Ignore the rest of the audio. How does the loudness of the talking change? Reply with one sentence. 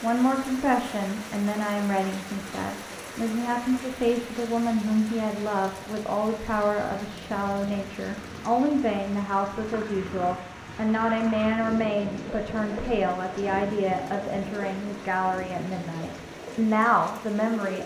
The volume of the talking stays about the same.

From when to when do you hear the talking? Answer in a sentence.
You can hear the talking from 0.0 to 17.8 s.